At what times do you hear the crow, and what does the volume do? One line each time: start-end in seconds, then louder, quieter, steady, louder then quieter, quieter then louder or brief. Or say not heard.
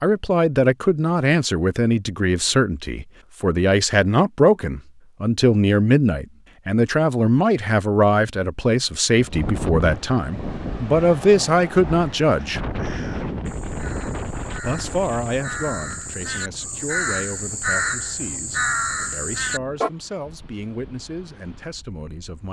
12.6-19.9 louder.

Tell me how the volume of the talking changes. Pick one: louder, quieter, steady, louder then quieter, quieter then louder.
quieter.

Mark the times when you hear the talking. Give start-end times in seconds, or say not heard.
0.0-12.6, 14.6-22.4.